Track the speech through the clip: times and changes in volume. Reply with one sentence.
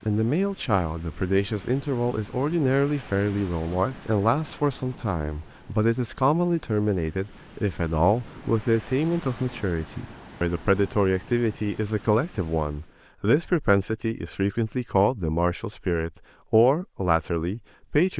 You can hear the speech from 0.1 to 18.1 s, at a steady volume.